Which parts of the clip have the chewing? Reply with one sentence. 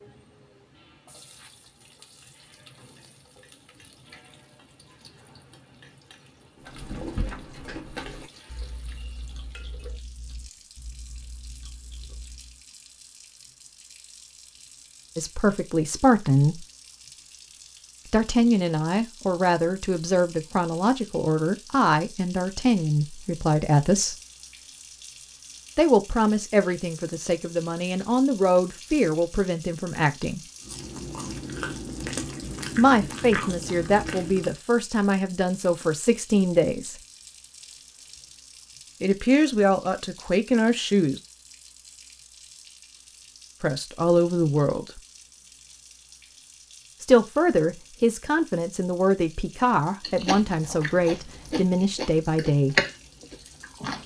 You can hear the chewing from 6.6 to 12.7 s, from 30.6 to 34.5 s and from 50.0 to 54.0 s.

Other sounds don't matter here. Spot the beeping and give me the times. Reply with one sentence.
The beeping can't be heard in this clip.